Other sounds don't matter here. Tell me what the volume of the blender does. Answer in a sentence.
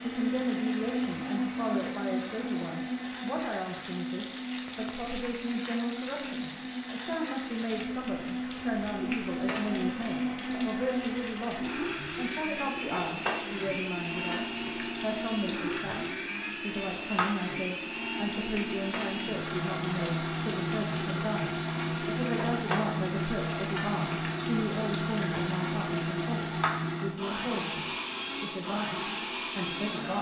The volume of the blender stays about the same.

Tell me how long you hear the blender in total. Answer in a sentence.
You can hear the blender for 30 seconds altogether.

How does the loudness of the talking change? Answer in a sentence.
The loudness of the talking stays about the same.